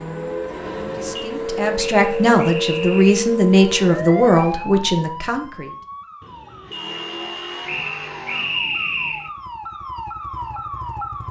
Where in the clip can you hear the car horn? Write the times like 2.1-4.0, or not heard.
0.7-1.3, 6.2-7.8.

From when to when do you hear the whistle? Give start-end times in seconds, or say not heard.
1.8-3.1, 7.7-9.3.